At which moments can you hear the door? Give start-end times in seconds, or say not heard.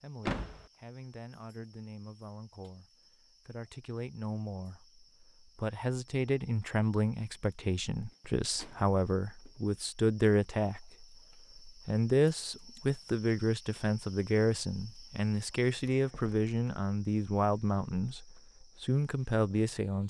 0.2-0.7, 8.1-9.8, 15.8-16.5.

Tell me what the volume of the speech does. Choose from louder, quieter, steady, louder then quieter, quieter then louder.
louder.